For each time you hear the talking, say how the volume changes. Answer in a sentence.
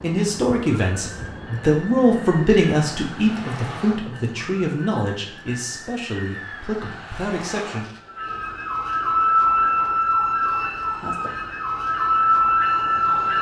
The talking can be heard from 0.0 to 7.8 s, getting quieter.